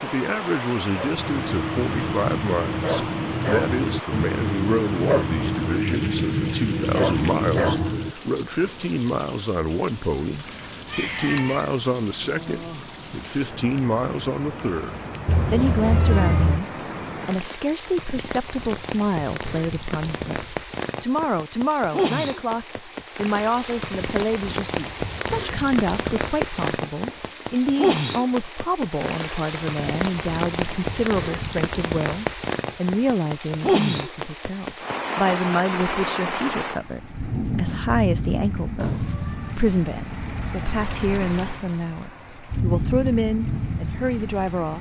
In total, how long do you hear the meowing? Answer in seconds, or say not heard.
4 s.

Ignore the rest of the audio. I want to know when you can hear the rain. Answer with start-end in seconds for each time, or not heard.
0.0-44.7.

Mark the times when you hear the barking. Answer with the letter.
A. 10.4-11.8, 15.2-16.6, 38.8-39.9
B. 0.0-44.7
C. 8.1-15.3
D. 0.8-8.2
D.